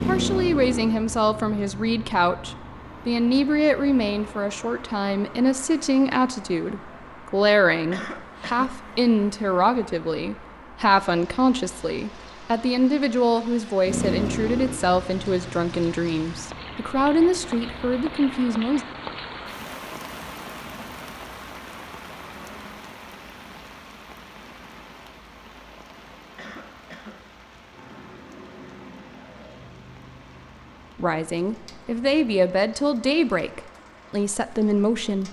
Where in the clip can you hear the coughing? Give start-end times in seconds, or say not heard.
7.9-8.8, 26.4-27.4.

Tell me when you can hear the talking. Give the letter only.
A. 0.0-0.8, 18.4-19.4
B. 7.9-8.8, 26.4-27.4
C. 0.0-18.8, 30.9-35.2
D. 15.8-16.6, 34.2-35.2
C.